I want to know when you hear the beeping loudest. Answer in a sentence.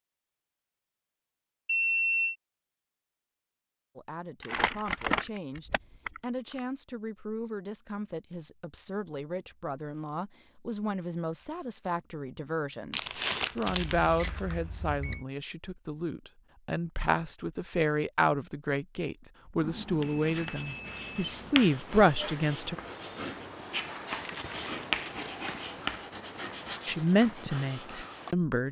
The volume of the beeping peaks at 2 seconds.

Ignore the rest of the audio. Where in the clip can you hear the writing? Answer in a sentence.
The writing can be heard from 19.9 to 28.6 s.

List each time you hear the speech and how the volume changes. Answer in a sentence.
The speech can be heard from 4.0 to 22.8 s, getting louder; and briefly from 26.9 to 28.6 s.